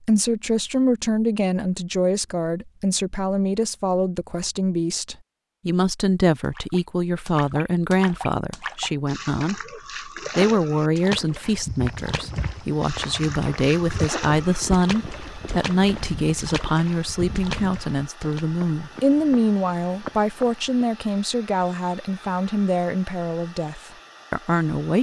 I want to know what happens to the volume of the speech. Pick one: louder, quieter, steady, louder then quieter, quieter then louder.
steady.